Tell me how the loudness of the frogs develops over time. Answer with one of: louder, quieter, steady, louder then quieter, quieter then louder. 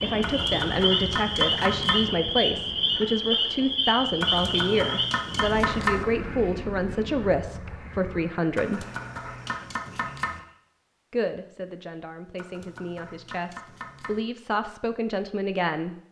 quieter.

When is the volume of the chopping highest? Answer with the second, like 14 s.
6 s.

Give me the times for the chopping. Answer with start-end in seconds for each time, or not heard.
0.2-2.0, 4.2-6.0, 8.6-10.4, 12.3-14.2.